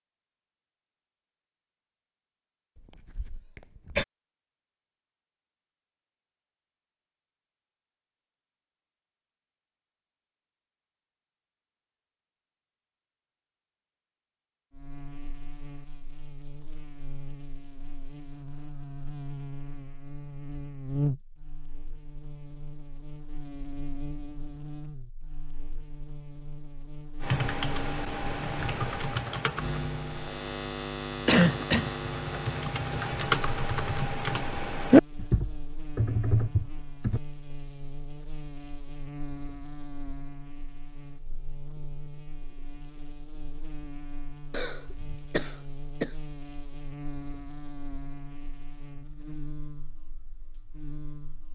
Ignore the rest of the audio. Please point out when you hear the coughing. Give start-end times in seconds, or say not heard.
3.1-4.0, 31.2-31.9, 44.5-46.1.